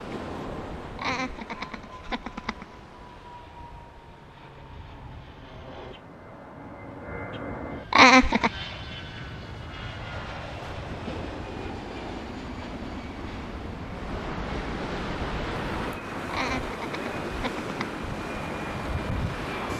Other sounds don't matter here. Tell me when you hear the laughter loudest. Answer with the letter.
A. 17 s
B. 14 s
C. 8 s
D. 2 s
C.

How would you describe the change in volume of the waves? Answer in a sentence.
The volume of the waves goes down, then up.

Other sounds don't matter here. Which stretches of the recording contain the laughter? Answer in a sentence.
You can hear the laughter from 0.9 to 2.6 s, from 7.9 to 8.5 s and from 16.3 to 17.9 s.